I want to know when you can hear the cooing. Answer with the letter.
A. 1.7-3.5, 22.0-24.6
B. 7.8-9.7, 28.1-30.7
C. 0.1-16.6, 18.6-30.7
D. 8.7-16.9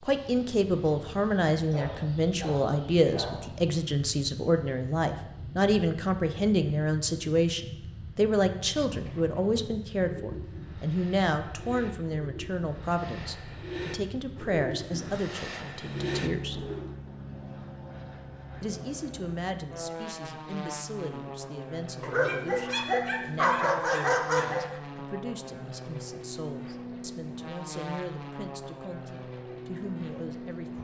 D.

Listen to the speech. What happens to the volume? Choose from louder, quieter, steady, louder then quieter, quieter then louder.
quieter.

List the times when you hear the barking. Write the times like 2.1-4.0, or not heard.
1.7-3.5, 22.0-24.6.